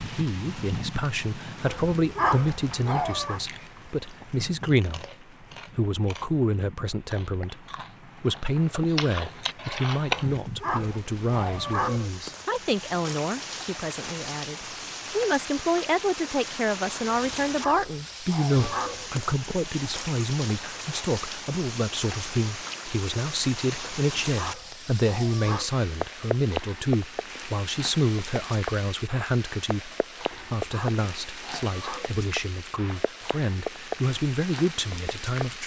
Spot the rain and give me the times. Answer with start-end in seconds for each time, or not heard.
0.0-35.6.